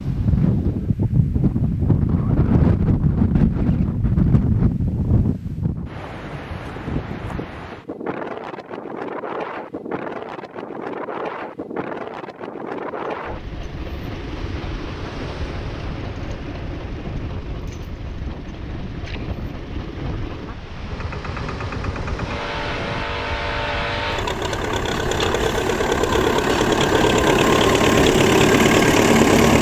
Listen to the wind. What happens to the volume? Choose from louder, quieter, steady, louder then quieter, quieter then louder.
quieter.